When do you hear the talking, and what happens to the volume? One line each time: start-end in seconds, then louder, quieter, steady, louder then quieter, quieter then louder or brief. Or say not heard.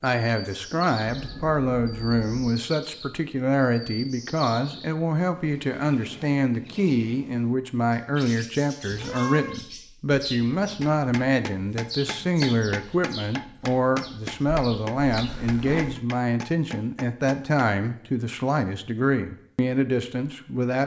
0.0-20.8 steady.